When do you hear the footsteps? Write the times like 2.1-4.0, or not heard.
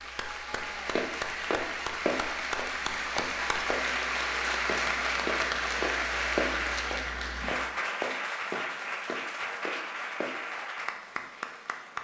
0.9-10.4.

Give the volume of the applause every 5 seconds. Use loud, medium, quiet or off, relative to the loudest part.
loud, loud, medium.